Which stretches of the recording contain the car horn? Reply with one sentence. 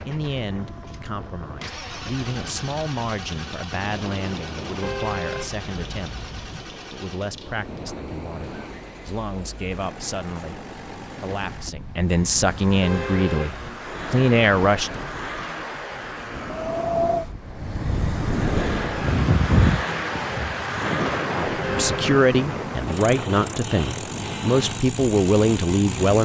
The car horn can be heard from 4.8 to 6.7 s, from 12.8 to 13.8 s and from 21.6 to 22.1 s.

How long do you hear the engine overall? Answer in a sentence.
The engine can be heard for 26 seconds in total.